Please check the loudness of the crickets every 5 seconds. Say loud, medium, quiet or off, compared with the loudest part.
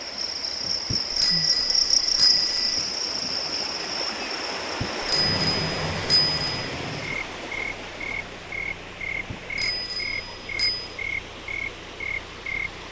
loud, medium, medium.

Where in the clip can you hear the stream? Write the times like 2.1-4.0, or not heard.
0.0-12.8.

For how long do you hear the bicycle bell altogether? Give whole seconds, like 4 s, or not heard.
5 s.